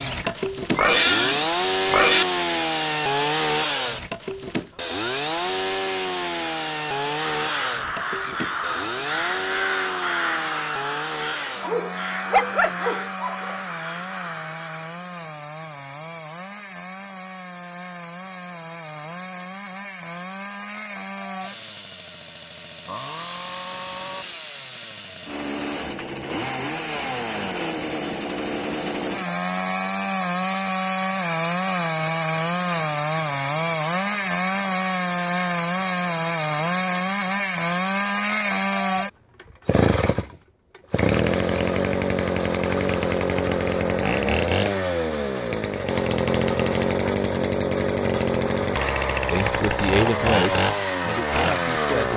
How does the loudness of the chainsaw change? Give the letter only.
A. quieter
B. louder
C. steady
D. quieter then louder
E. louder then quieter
D.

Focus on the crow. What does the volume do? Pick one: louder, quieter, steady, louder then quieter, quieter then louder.
quieter.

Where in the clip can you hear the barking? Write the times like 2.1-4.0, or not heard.
11.6-13.6.